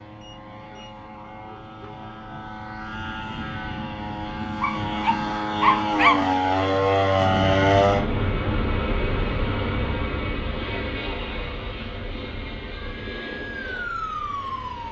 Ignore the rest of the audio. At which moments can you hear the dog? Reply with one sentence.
The dog can be heard from 4.6 to 6.2 s.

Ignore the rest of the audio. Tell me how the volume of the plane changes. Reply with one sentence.
The volume of the plane goes up, then down.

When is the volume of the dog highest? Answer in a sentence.
The volume of the dog peaks at 6 seconds.